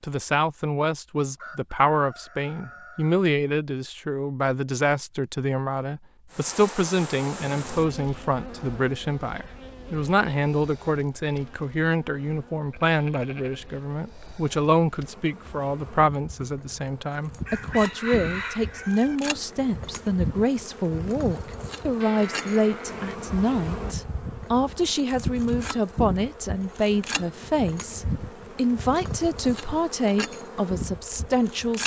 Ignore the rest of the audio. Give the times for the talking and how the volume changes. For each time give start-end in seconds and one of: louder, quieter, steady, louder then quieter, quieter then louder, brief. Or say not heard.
0.0-31.8 steady.